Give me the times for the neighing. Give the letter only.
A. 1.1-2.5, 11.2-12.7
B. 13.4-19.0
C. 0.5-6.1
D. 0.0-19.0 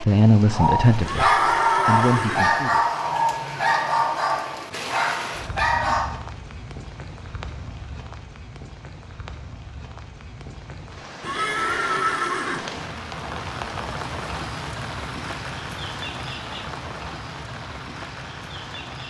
A.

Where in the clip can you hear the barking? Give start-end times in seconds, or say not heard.
0.5-6.1.